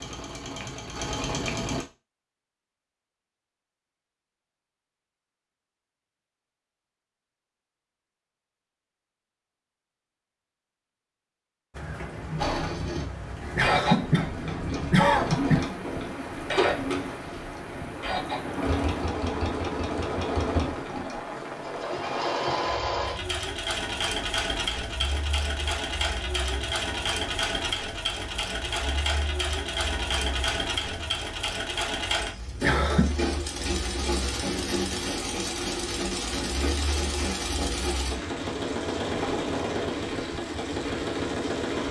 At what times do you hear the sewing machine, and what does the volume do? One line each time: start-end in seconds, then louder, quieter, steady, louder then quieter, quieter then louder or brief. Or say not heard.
0.0-1.9 brief
12.3-41.8 steady.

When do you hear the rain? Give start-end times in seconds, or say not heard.
11.7-41.8.